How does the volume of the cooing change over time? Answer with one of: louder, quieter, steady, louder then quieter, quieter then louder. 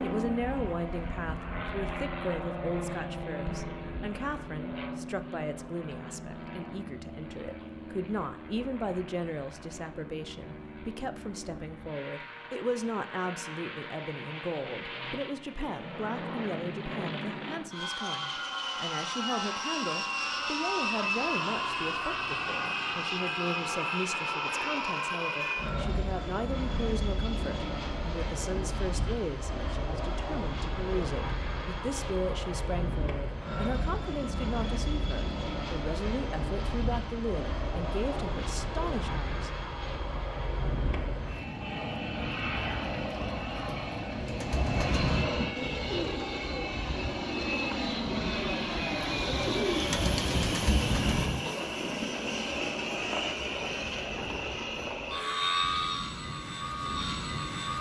quieter then louder.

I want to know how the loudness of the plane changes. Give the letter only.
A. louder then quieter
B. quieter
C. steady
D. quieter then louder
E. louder
E.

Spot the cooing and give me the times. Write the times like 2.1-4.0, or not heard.
44.2-51.6.